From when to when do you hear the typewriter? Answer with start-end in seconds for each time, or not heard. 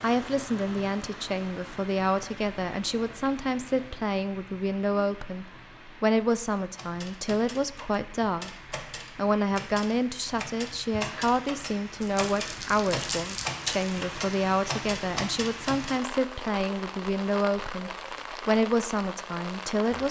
6.8-16.0.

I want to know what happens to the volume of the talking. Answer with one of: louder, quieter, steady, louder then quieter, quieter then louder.
steady.